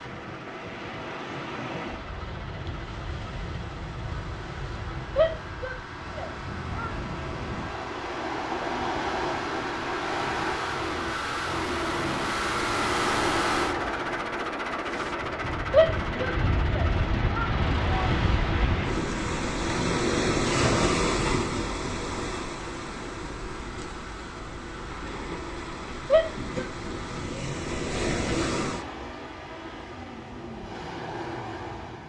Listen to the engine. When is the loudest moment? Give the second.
13 s.